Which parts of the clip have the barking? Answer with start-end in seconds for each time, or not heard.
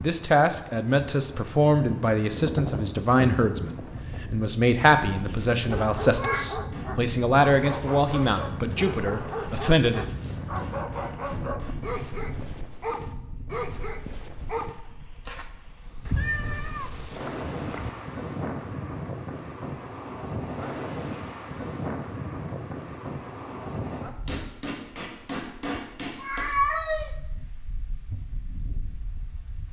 5.2-15.5.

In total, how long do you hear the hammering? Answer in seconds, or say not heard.
6 s.